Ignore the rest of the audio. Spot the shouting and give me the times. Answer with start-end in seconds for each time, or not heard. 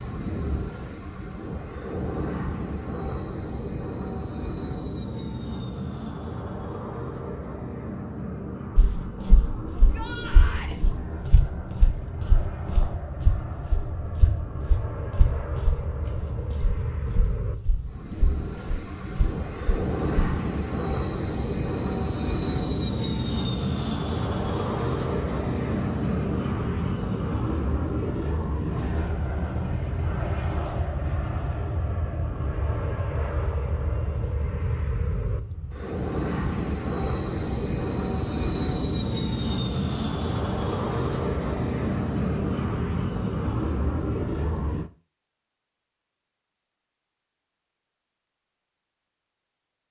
9.7-10.8.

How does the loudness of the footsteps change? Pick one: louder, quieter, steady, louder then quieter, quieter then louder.
louder then quieter.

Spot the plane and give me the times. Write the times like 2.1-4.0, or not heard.
0.0-44.9.